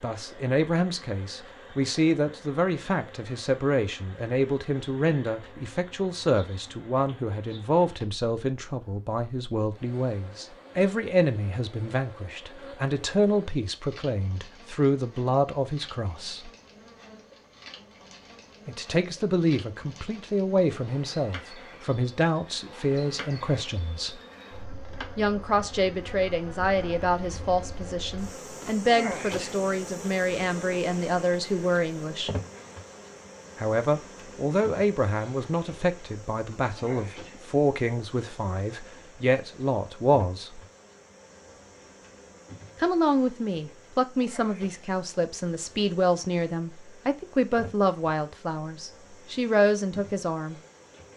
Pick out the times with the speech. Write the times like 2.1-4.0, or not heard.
0.0-16.5, 18.6-24.2, 25.1-32.3, 33.5-40.6, 42.8-50.5.